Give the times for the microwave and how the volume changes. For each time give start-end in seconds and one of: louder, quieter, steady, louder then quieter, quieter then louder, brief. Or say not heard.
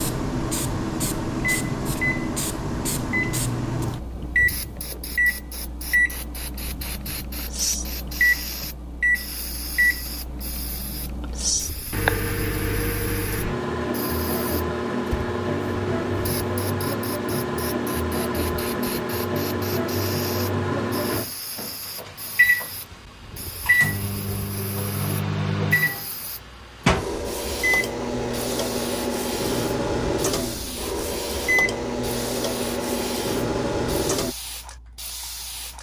0.0-34.4 steady.